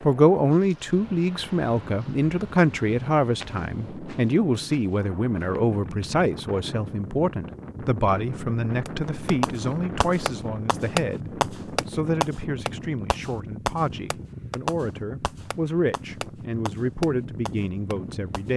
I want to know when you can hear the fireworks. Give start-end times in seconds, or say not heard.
8.8-18.5.